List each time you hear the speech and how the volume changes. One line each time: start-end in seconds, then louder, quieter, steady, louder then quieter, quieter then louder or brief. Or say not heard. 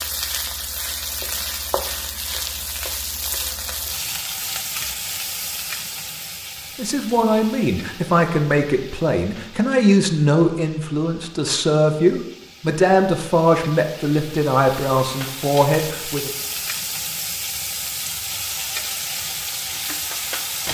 6.8-16.3 steady.